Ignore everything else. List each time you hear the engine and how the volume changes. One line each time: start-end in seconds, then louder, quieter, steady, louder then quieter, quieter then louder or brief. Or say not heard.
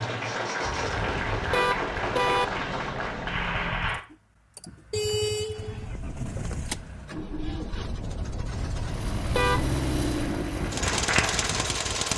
0.0-12.1 louder.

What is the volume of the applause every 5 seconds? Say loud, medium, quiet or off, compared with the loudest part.
loud, off, loud.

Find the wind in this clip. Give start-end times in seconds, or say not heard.
5.5-12.1.